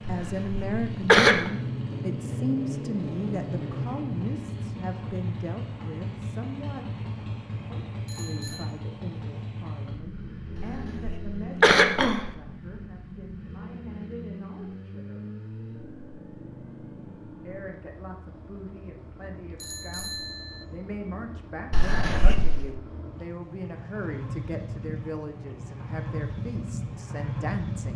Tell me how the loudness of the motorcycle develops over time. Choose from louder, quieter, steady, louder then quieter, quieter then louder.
quieter then louder.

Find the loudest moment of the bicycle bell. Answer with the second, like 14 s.
20 s.